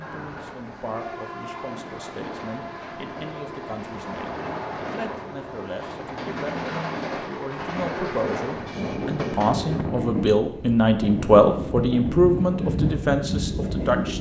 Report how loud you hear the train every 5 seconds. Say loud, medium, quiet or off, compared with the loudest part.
medium, loud, loud.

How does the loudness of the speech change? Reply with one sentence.
The loudness of the speech goes up.